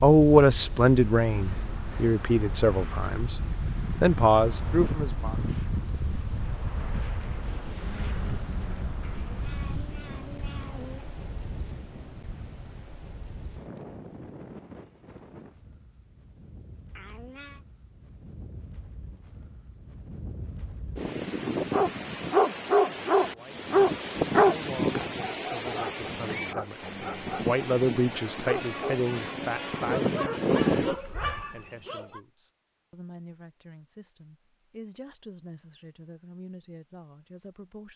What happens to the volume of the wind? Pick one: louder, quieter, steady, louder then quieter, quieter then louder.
quieter then louder.